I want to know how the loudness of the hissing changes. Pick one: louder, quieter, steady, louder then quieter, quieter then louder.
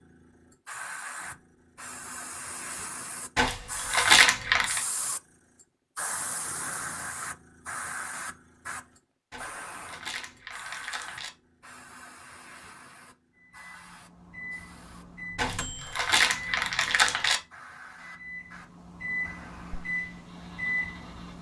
quieter.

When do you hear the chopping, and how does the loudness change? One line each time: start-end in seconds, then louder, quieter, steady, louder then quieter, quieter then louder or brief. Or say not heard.
not heard.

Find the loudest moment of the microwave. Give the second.
20 s.